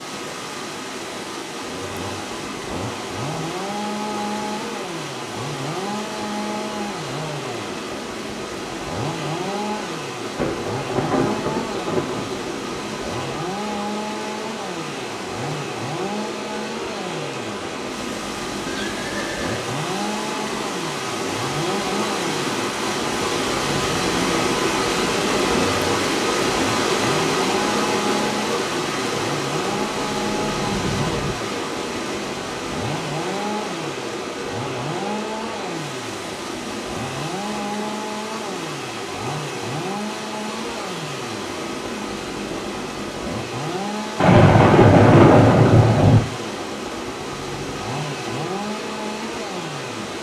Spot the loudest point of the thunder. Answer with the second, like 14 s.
45 s.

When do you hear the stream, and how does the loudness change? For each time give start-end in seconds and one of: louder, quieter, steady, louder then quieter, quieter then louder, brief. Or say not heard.
0.0-50.1 louder then quieter.